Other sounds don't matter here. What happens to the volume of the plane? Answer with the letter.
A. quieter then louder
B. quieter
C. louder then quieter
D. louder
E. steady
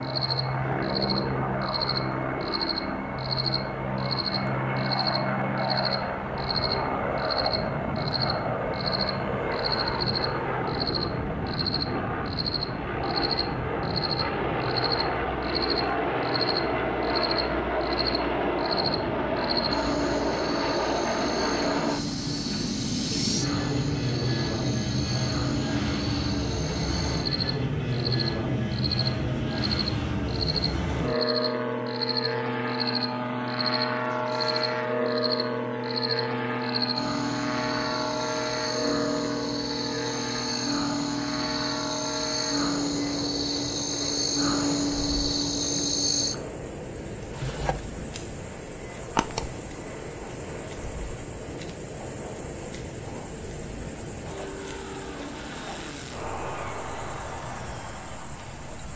B.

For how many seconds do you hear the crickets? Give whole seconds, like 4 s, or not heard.
59 s.